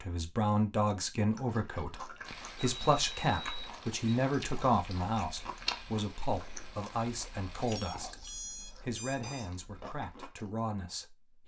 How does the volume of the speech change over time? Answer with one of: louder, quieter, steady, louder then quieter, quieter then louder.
quieter.